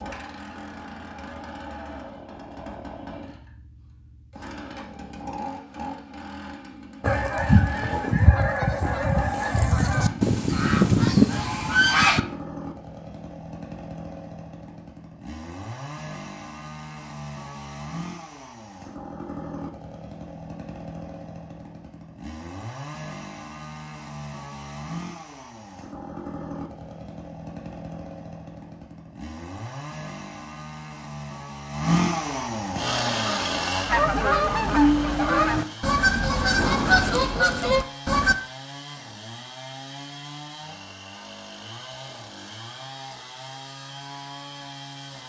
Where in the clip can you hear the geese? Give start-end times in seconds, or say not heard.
7.0-12.2, 33.0-38.4.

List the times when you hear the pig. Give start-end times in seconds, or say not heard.
not heard.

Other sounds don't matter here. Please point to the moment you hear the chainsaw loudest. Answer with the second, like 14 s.
32 s.